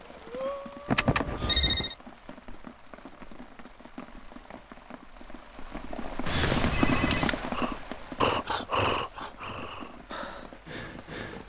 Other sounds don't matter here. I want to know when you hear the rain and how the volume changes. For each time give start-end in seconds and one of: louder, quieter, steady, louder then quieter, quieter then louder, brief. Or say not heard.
0.0-11.4 louder then quieter.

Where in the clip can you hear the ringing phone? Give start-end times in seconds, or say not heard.
0.8-1.9, 6.2-7.5.